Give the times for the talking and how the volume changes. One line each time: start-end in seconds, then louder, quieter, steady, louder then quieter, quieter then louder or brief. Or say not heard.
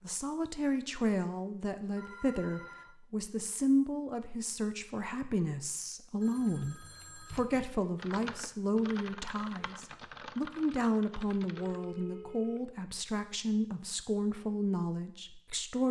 0.0-15.8 steady.